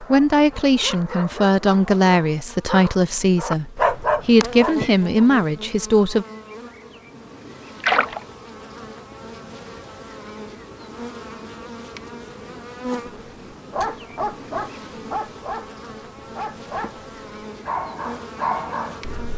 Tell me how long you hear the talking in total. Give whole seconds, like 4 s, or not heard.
6 s.